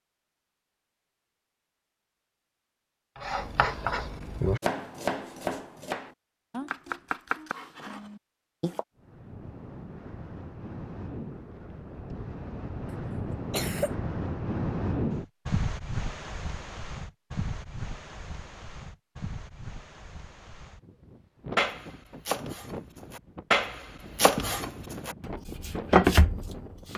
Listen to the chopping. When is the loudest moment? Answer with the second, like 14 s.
26 s.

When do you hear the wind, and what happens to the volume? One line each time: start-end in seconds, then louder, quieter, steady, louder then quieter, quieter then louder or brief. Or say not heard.
8.9-26.9 louder then quieter.